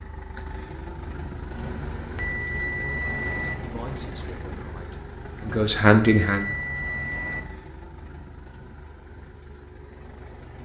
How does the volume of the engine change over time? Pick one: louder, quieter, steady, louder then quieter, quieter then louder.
quieter.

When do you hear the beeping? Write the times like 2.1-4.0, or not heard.
1.6-3.5, 5.4-7.4.